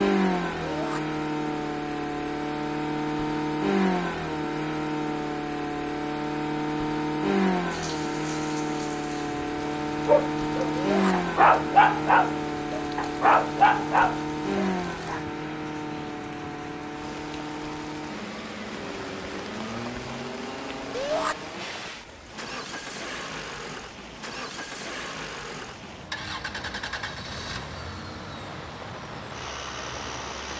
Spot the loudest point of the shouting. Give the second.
21 s.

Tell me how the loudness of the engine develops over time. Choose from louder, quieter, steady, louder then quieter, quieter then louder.
quieter.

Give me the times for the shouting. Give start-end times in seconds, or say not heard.
0.6-1.0, 10.8-11.2, 20.9-21.4.